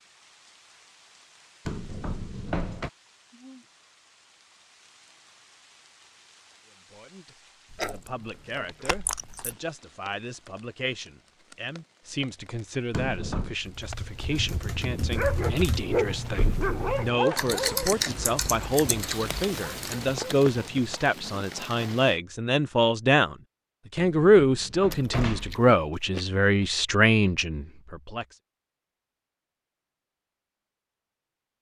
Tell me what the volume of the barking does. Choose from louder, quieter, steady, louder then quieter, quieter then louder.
quieter.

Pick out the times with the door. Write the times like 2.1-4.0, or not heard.
1.6-2.9, 12.9-13.6, 23.9-25.6.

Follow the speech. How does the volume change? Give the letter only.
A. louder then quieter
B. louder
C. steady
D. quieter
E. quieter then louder
B.